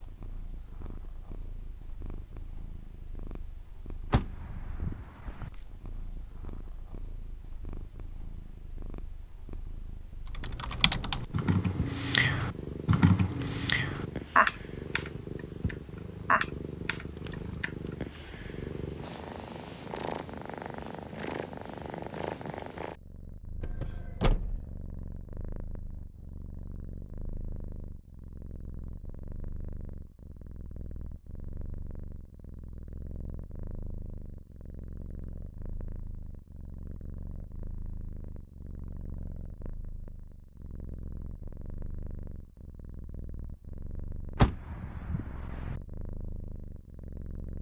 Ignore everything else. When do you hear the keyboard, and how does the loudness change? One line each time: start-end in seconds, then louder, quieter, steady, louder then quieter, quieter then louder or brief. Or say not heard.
10.3-18.2 louder then quieter.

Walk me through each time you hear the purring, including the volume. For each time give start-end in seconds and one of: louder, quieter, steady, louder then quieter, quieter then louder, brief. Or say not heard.
0.0-47.5 louder then quieter.